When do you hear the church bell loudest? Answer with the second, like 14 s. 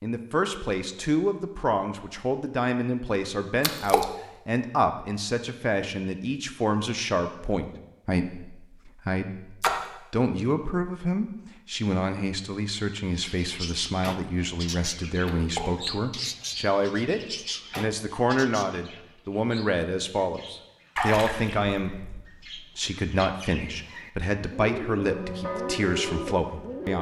26 s.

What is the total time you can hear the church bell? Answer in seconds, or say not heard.
2 s.